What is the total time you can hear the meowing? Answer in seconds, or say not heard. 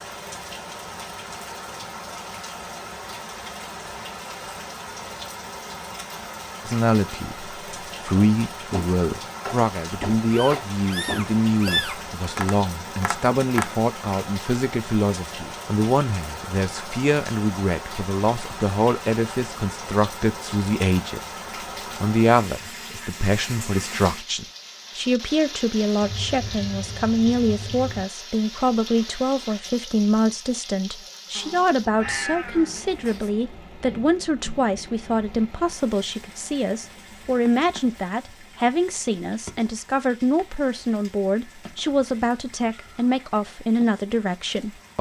6 s.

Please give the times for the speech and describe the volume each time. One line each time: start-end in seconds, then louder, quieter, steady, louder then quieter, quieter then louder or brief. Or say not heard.
6.7-21.2 steady
22.0-44.9 steady.